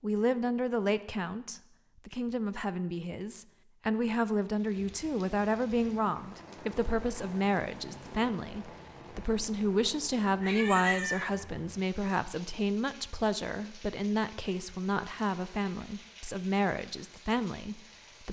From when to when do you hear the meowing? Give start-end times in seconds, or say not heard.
10.4-11.3.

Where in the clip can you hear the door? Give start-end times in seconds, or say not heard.
not heard.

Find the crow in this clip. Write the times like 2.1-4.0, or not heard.
not heard.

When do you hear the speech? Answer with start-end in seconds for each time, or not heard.
0.0-18.2.